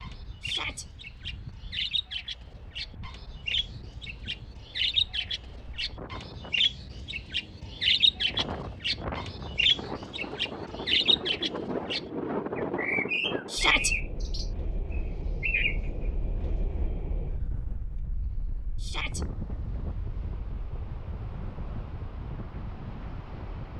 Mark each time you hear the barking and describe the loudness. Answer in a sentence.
You can't hear the barking here.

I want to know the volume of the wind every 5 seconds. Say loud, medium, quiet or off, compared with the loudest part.
quiet, medium, loud, medium, medium.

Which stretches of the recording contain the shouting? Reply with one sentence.
The shouting can be heard from 0.4 to 0.8 s, from 13.5 to 13.9 s and from 18.8 to 19.2 s.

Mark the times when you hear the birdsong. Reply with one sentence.
You can hear the birdsong from 0.0 to 16.1 s.